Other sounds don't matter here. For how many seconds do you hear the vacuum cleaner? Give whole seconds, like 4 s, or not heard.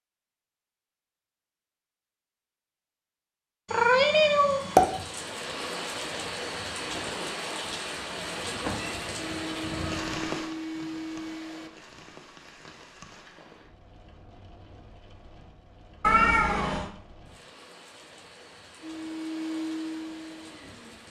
5 s.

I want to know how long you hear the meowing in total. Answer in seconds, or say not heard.
4 s.